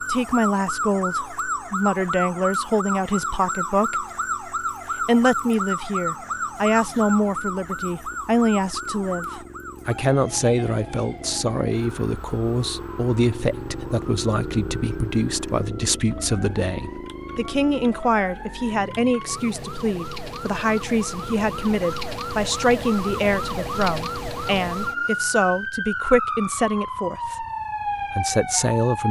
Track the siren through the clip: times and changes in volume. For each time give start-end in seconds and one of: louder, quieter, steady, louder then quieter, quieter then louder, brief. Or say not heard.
0.0-29.0 quieter then louder.